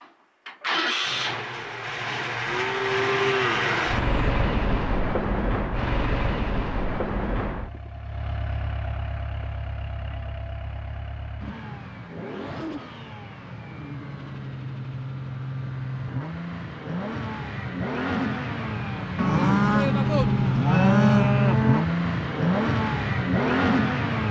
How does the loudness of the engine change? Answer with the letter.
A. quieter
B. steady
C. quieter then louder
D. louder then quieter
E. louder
C.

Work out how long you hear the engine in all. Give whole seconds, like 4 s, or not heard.
24 s.